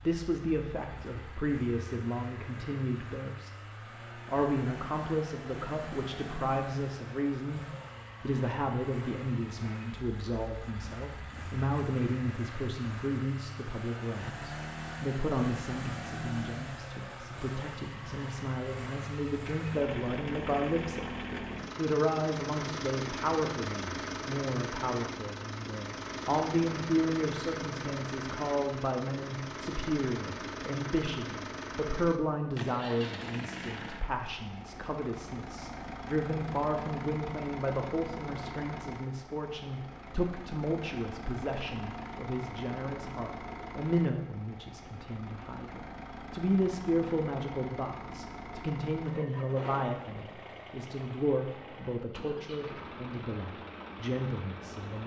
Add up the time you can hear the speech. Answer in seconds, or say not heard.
54 s.